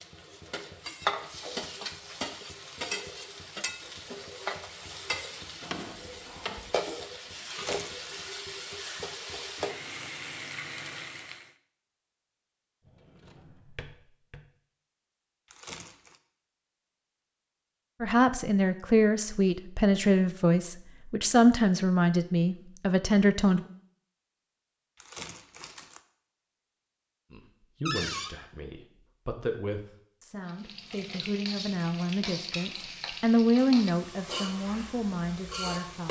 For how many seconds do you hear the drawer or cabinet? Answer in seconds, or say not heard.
3 s.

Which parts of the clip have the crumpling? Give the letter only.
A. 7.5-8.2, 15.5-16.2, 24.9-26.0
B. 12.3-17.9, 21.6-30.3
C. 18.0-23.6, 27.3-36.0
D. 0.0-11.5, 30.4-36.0
A.